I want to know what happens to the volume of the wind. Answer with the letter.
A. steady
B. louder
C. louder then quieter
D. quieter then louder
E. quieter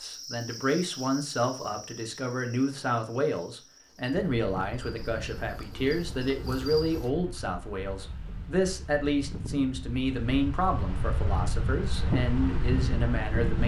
B.